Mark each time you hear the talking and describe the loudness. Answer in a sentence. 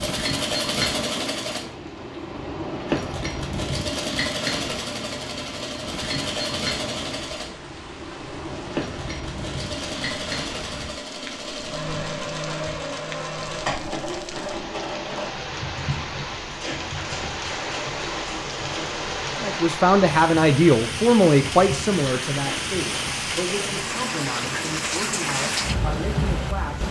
The talking can be heard from 19.4 to 26.8 s, getting quieter.